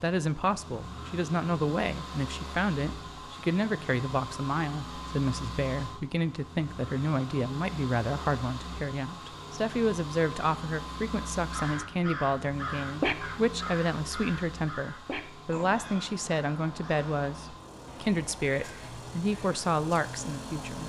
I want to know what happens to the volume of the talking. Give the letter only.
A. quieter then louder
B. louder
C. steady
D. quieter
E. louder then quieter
C.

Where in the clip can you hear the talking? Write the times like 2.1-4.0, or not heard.
0.0-20.8.